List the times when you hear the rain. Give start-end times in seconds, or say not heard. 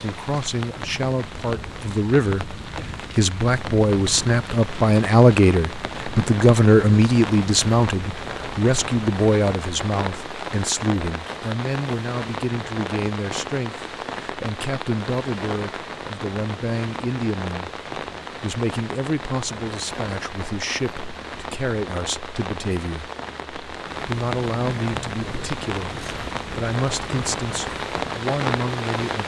0.0-29.2.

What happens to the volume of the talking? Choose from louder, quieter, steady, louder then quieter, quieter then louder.
quieter.